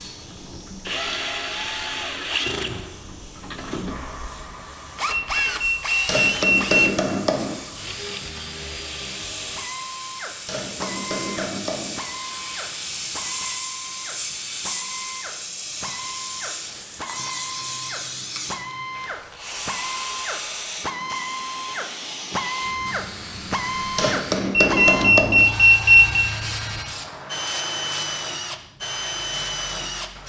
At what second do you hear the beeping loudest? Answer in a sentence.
The volume of the beeping peaks at 26 seconds.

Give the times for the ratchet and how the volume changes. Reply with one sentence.
The ratchet can't be heard in this clip.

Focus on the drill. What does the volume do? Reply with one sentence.
The volume of the drill goes down, then up.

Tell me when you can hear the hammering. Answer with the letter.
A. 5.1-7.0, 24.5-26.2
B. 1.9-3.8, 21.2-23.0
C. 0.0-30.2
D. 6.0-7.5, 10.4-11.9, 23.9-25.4
D.